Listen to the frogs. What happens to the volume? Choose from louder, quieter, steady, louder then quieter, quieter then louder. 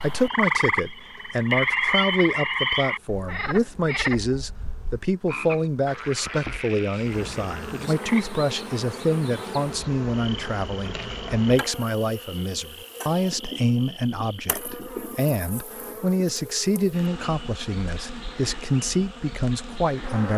quieter.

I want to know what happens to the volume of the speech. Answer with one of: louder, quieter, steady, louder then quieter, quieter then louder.
steady.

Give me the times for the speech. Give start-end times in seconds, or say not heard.
0.0-20.3.